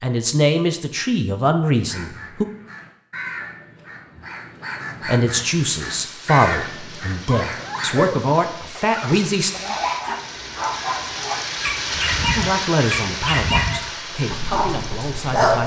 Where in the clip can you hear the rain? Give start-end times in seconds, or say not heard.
5.3-15.6.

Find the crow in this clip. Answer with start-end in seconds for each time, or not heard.
1.9-8.2.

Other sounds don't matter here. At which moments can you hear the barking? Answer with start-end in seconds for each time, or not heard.
7.2-15.6.